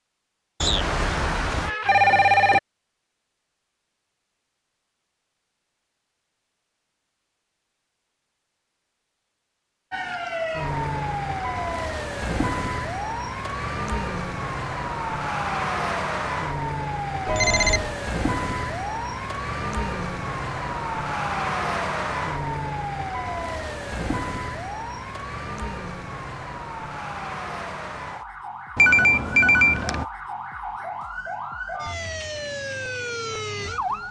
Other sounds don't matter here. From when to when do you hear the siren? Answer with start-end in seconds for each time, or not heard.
9.9-34.0.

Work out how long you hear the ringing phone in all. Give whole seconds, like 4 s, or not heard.
4 s.